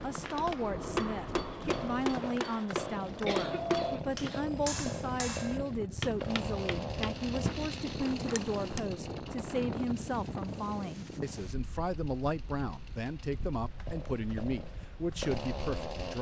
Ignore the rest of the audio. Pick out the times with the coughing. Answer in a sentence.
You can hear the coughing from 3.2 to 4.4 s.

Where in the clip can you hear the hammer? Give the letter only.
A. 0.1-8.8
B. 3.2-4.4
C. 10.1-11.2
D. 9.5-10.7
A.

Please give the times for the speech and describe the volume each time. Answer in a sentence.
You can hear the speech from 0.0 to 16.1 s, at a steady volume.